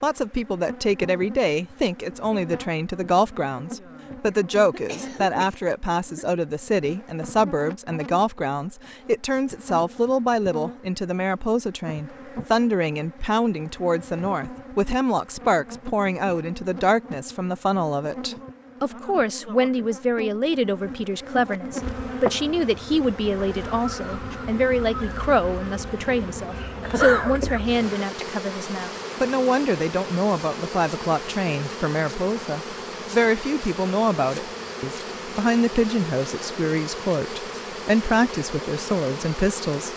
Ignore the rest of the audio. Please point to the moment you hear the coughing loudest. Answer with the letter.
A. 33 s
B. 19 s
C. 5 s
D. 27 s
D.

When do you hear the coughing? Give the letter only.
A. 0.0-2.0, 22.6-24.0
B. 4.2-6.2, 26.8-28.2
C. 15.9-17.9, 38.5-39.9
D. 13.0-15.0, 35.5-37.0
B.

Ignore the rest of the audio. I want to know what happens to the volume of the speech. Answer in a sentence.
The loudness of the speech stays about the same.